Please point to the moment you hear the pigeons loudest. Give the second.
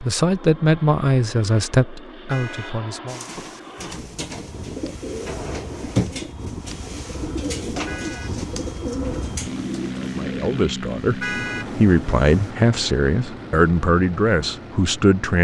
6 s.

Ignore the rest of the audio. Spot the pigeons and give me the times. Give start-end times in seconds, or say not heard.
3.0-12.5.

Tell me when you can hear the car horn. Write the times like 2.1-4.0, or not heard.
2.2-2.8, 7.8-8.3, 11.2-11.7.